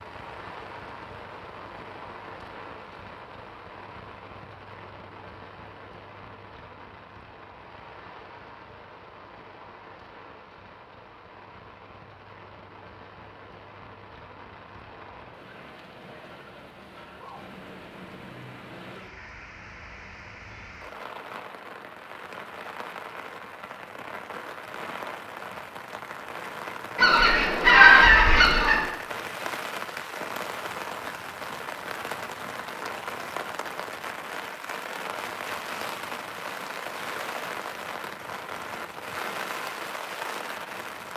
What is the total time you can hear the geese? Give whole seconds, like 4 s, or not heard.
2 s.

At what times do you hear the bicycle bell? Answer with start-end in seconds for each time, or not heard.
not heard.